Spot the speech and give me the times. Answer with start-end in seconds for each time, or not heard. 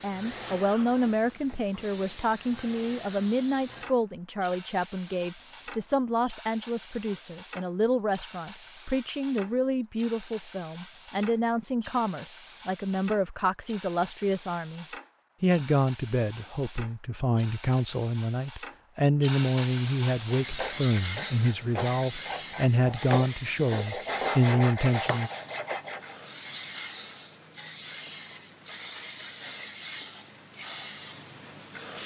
0.0-25.3.